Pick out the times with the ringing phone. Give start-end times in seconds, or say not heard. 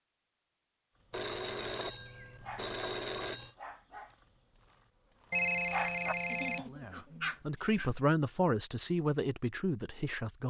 1.1-3.5, 5.3-6.7.